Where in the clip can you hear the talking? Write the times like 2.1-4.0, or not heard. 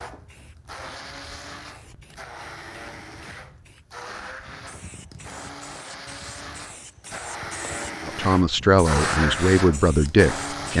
8.1-10.7.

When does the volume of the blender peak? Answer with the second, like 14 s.
9 s.